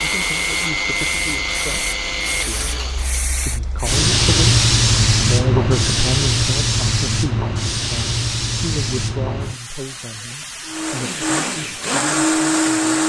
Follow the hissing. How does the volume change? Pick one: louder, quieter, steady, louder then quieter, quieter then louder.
louder then quieter.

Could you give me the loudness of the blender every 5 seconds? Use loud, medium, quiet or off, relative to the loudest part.
loud, off, loud.